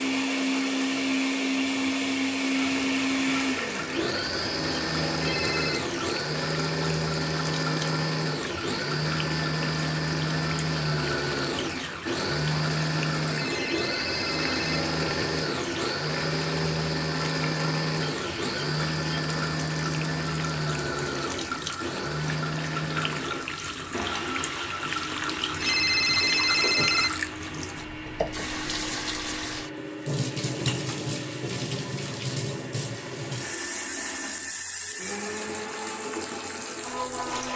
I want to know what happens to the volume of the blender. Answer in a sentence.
The loudness of the blender goes down.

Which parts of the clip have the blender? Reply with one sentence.
You can hear the blender from 0.0 to 37.5 s.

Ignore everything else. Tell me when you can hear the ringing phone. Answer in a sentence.
The ringing phone can be heard from 5.2 to 5.8 s, from 13.3 to 14.8 s and from 25.6 to 27.1 s.